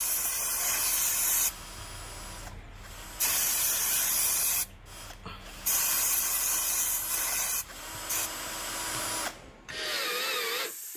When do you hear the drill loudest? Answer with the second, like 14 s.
10 s.